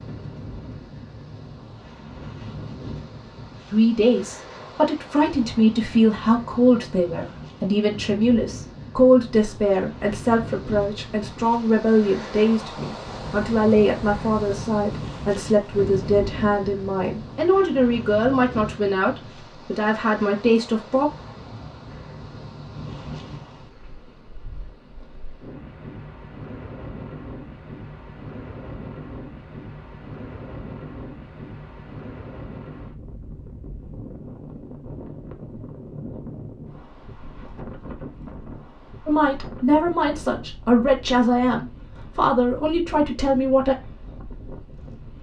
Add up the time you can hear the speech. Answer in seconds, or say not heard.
22 s.